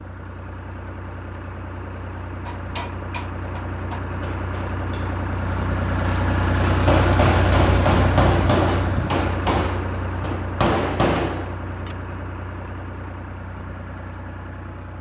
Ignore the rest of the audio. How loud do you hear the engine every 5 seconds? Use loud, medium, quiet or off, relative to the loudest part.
medium, loud, medium.